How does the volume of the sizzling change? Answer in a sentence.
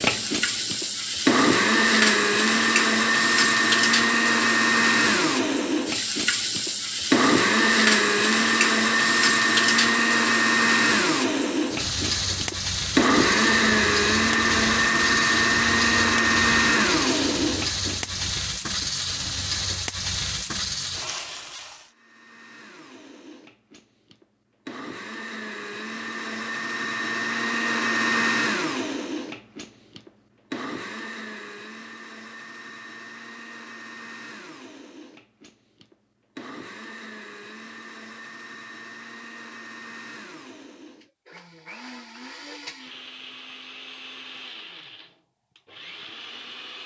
The volume of the sizzling stays about the same.